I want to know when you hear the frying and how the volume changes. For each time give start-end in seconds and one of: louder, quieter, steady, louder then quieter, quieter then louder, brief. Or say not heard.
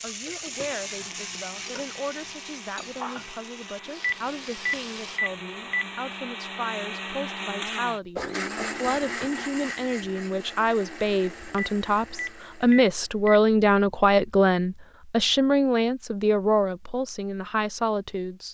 0.0-5.2 quieter.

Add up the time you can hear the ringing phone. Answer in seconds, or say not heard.
4 s.